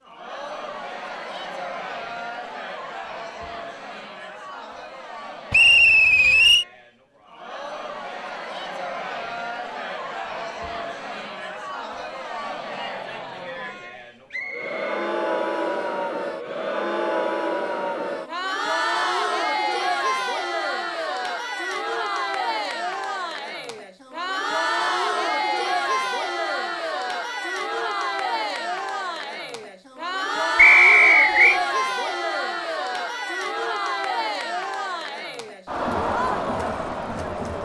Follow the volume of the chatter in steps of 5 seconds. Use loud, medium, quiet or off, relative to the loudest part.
medium, medium, medium, loud, loud, loud, loud, loud.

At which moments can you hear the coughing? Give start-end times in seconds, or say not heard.
not heard.